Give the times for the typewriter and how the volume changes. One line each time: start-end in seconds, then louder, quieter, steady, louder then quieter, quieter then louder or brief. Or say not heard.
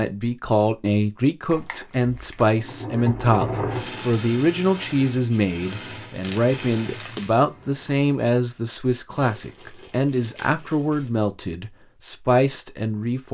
not heard.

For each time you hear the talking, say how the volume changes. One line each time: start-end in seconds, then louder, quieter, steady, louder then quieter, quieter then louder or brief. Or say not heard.
0.0-13.2 steady.